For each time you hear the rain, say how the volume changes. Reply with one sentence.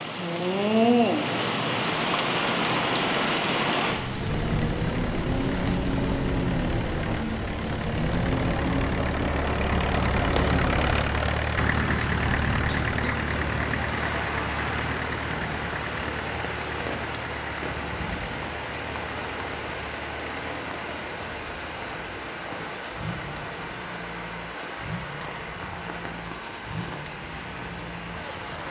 The rain can be heard from 0.0 to 28.6 s, getting quieter.